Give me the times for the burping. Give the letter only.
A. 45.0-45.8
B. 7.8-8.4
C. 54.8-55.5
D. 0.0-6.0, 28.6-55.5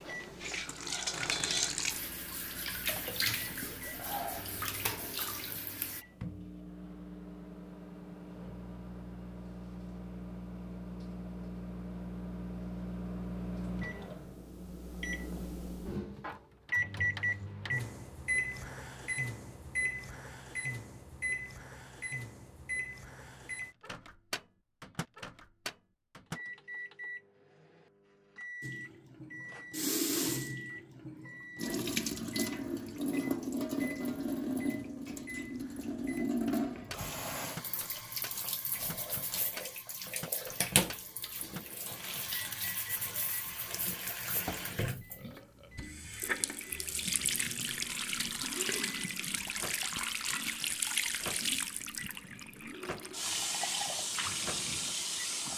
A.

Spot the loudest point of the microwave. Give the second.
17 s.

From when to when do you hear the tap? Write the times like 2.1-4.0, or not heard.
0.0-6.0, 28.6-55.5.